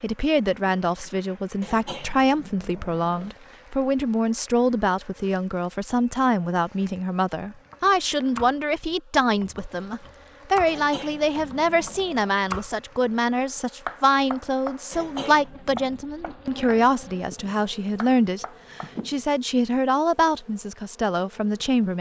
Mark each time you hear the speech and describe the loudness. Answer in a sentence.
The speech can be heard from 0.0 to 21.9 s, at a steady volume.